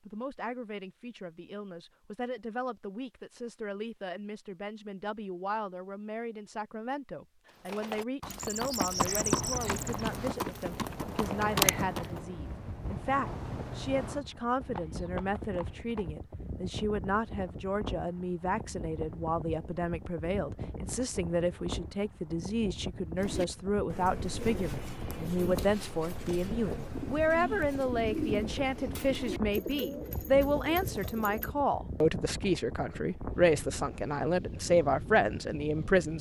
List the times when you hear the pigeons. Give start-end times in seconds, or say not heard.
23.1-31.6.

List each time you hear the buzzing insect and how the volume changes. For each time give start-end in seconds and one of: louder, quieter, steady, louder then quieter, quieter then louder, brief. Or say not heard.
not heard.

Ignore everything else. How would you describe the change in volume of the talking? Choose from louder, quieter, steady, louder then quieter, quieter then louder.
louder.